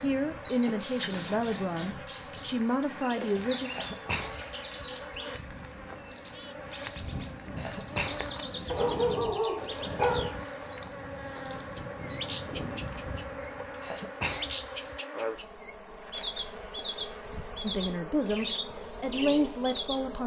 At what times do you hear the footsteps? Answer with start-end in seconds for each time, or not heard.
not heard.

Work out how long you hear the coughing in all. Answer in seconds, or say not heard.
4 s.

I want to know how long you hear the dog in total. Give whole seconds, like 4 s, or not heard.
2 s.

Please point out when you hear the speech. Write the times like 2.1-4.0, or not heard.
0.0-3.7, 17.6-20.2.